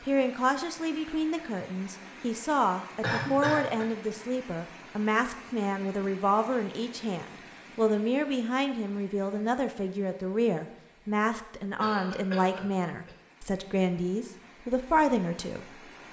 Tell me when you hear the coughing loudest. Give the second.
3 s.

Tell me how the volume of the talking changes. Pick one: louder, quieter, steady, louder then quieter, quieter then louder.
steady.